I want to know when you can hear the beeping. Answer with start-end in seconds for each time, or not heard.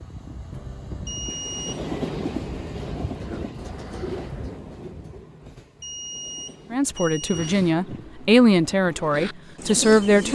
1.1-1.7, 5.8-7.5.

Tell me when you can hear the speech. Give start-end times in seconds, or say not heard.
6.7-10.3.